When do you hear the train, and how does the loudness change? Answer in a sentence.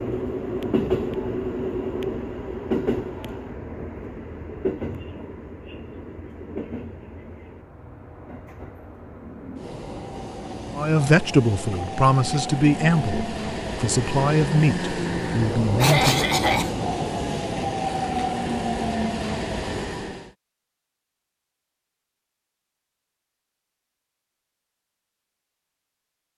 You can hear the train from 0.0 to 20.3 s, getting quieter then louder.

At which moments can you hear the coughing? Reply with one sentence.
You can hear the coughing from 15.8 to 16.7 s.